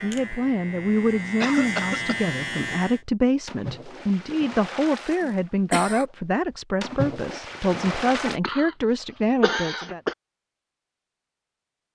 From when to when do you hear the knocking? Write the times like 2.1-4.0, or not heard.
not heard.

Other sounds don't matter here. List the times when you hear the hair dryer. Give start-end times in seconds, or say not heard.
not heard.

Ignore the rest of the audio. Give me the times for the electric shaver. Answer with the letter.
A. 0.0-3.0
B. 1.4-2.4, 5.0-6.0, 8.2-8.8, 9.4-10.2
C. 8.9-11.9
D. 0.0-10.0
A.